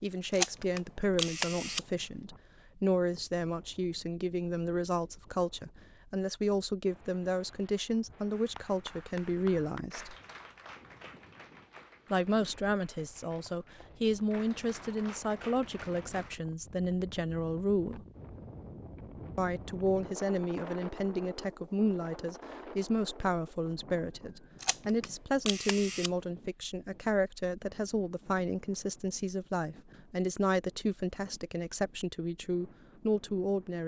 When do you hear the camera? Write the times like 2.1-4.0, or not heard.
0.3-1.9, 24.6-26.1.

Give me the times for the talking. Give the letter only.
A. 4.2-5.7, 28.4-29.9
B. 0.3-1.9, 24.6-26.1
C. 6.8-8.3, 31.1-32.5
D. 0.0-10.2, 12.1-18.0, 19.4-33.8
D.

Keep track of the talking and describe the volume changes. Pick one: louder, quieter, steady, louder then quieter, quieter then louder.
steady.